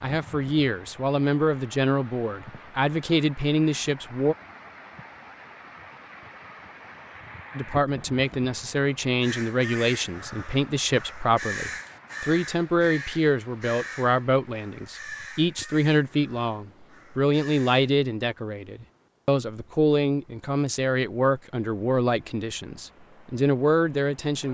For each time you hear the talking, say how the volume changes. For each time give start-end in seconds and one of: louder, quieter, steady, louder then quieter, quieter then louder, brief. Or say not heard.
0.0-4.3 steady
7.5-24.4 steady.